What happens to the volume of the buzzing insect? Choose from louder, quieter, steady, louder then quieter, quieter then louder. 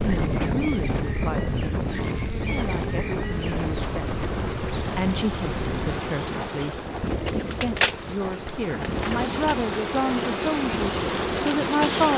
louder.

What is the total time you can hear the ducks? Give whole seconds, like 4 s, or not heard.
not heard.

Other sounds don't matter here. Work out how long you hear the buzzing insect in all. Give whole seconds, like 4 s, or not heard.
12 s.